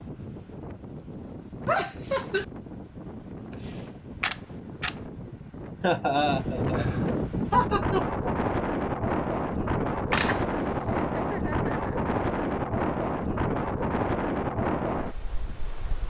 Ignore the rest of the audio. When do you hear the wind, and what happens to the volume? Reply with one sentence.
The wind can be heard from 0.0 to 16.0 s, getting louder.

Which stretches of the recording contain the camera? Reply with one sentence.
The camera can be heard from 3.5 to 5.0 s and from 10.1 to 10.8 s.